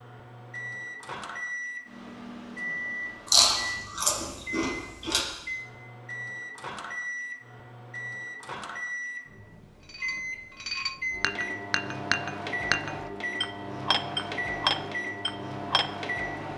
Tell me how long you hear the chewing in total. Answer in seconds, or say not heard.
2 s.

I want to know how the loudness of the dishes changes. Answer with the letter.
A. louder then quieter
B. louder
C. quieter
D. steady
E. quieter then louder
B.